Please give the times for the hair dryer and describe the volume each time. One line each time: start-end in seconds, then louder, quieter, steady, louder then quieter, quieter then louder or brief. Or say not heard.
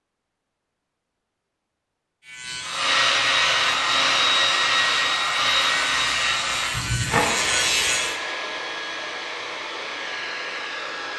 2.6-11.1 quieter.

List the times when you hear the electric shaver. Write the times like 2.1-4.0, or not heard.
2.2-8.2.